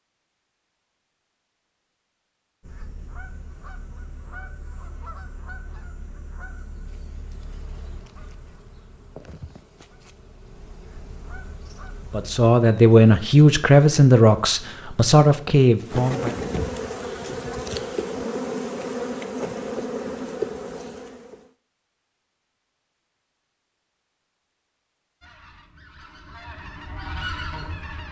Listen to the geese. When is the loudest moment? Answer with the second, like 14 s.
27 s.